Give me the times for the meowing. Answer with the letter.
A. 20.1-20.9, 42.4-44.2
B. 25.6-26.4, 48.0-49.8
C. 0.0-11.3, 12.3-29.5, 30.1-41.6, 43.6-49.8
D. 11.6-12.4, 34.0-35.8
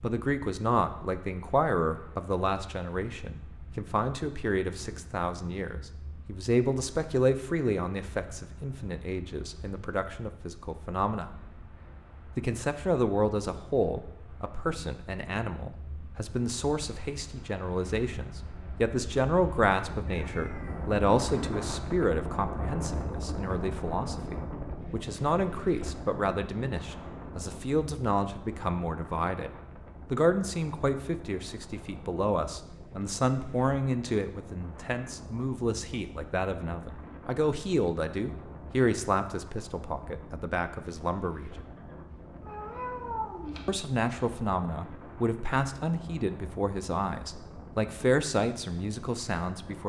A.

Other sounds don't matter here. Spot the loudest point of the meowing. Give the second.
43 s.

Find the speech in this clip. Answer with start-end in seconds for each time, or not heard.
0.0-11.3, 12.3-29.5, 30.1-41.6, 43.6-49.8.